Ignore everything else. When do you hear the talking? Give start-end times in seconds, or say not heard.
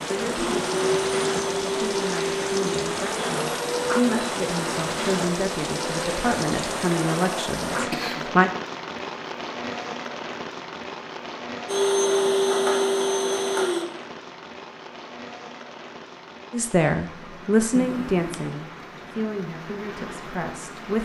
0.1-8.5, 16.5-20.9.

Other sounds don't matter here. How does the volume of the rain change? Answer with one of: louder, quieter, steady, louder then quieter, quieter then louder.
quieter.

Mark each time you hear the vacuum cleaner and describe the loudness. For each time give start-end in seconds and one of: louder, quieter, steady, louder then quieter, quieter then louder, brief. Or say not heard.
0.0-7.8 quieter
11.7-13.8 brief.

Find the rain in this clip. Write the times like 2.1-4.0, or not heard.
0.0-20.9.